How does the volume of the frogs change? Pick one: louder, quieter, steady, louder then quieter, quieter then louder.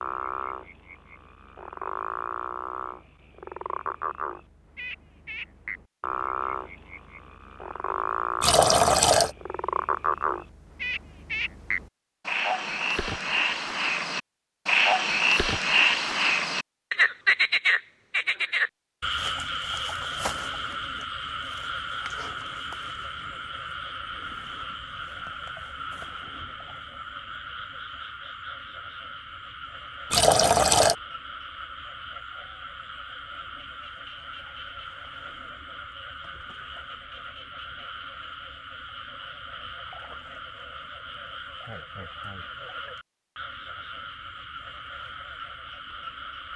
louder then quieter.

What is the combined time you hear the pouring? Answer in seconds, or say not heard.
2 s.